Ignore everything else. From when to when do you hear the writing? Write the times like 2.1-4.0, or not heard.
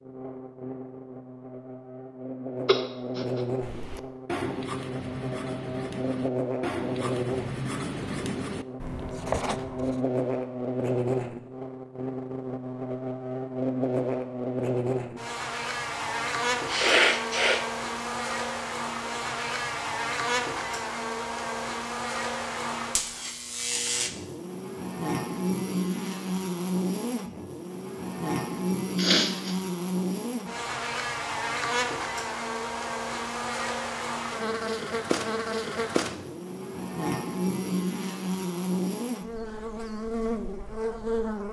3.6-10.1.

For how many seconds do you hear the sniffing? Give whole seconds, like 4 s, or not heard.
2 s.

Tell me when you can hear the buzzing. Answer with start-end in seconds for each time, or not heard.
0.0-41.4.